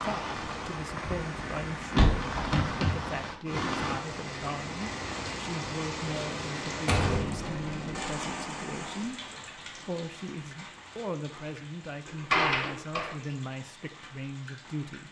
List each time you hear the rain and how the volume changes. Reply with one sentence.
The rain can be heard from 0.0 to 15.0 s, getting quieter.